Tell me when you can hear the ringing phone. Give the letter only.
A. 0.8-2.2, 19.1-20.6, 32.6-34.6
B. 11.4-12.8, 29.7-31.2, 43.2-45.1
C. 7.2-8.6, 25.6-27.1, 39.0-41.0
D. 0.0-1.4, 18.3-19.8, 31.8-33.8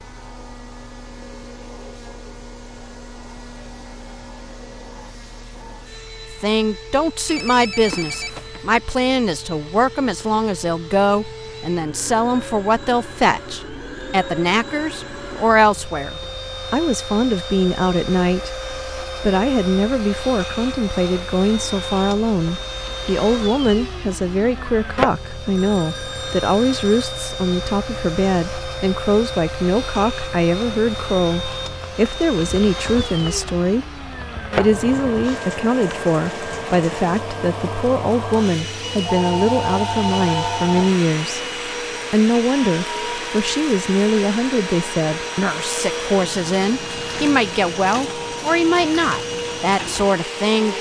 C.